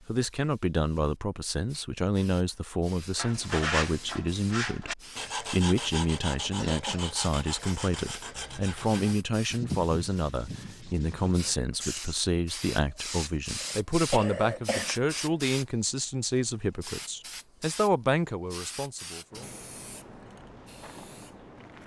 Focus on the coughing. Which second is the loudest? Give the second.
14 s.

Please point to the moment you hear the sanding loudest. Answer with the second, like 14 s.
4 s.